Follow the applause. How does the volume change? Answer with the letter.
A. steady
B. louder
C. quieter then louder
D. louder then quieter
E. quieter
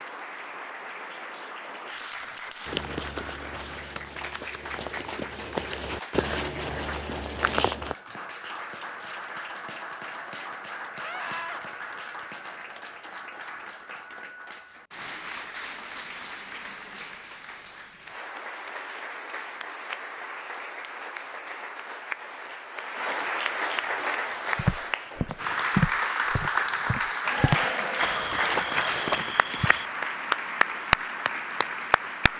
B.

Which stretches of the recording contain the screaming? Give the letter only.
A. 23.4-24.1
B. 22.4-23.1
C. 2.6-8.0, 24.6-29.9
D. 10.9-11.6
D.